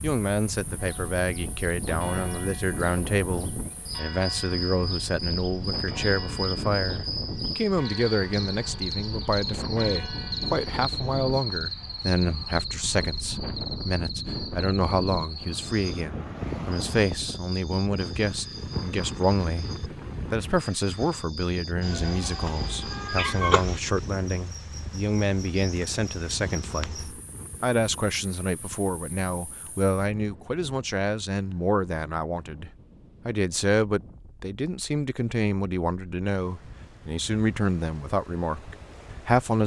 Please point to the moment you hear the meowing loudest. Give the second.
23 s.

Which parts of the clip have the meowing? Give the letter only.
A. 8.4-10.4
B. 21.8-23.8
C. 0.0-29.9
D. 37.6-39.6
B.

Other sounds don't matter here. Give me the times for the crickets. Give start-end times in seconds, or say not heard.
0.0-29.9.